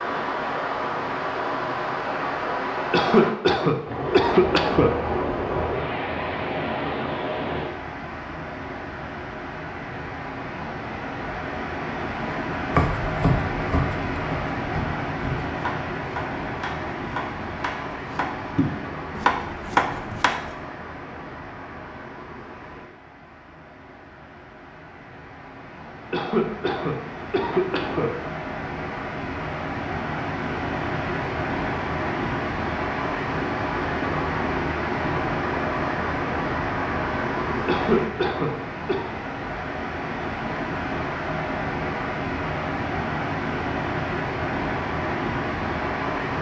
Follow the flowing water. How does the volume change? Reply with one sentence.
The loudness of the flowing water goes down, then up.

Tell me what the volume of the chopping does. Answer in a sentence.
The loudness of the chopping goes down, then up.